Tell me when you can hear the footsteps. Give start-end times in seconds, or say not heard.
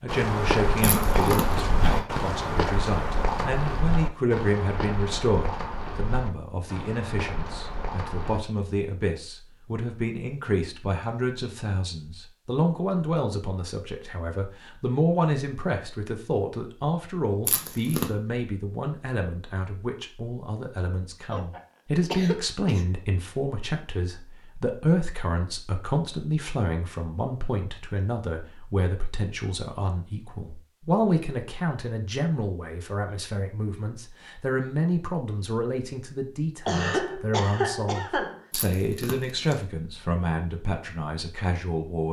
0.1-8.4.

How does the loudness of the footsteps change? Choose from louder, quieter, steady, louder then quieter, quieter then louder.
quieter.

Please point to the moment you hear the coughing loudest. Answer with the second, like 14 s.
37 s.